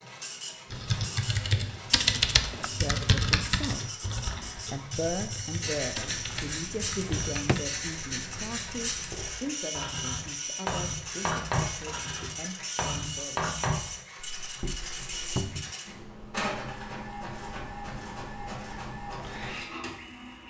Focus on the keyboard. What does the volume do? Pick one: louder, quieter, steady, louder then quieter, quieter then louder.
quieter.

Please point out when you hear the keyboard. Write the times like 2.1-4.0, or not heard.
0.7-7.7.